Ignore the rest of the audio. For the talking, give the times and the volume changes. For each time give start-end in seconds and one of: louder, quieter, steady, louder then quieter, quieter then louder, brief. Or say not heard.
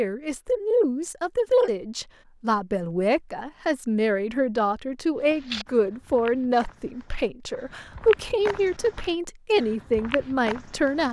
0.0-11.0 steady.